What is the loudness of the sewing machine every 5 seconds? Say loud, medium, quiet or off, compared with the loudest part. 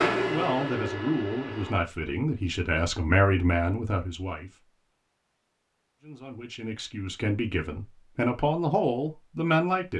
loud, off.